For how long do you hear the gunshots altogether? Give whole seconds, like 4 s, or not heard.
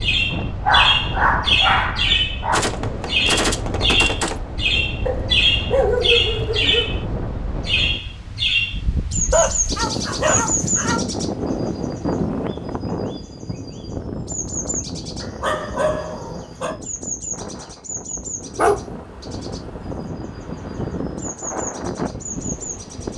2 s.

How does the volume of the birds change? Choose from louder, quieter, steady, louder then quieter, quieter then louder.
quieter.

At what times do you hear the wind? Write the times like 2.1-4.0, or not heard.
0.0-23.1.